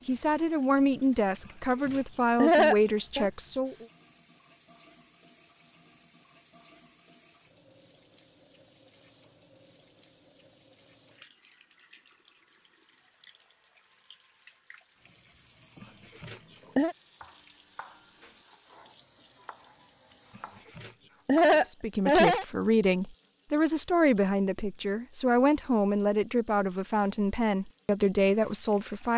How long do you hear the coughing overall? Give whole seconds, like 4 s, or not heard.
4 s.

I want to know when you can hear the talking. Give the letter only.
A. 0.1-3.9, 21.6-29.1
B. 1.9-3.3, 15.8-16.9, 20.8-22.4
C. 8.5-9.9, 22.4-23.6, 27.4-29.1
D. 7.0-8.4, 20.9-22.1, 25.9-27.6
A.